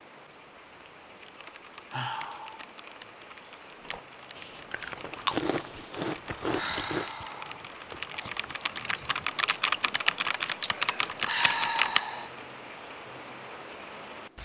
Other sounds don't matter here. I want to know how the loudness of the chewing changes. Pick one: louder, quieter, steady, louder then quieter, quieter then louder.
quieter.